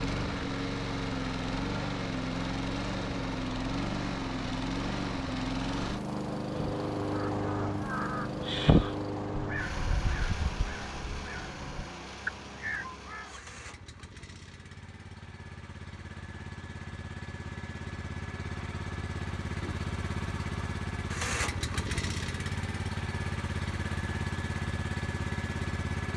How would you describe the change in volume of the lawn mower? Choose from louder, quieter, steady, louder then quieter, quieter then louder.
quieter then louder.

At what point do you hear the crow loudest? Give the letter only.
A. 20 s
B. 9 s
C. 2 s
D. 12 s
B.